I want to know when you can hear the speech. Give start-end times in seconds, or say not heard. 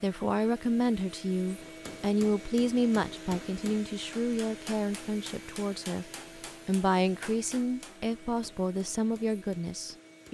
0.0-6.0, 6.7-10.2.